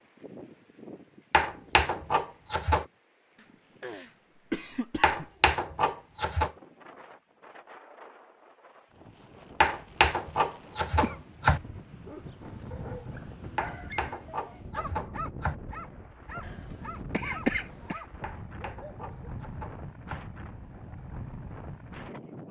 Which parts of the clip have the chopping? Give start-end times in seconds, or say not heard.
1.3-2.9, 5.0-6.5, 9.6-11.6, 13.6-15.6, 18.2-20.2.